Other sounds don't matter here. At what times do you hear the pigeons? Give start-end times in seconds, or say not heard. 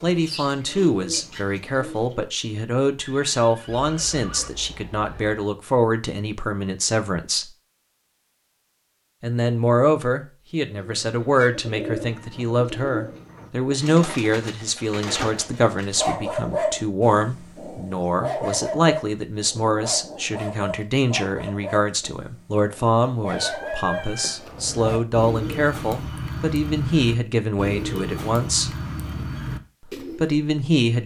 0.0-2.4, 10.7-16.1, 24.4-30.4.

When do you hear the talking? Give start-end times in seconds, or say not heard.
0.0-7.5, 9.2-28.7, 30.1-31.0.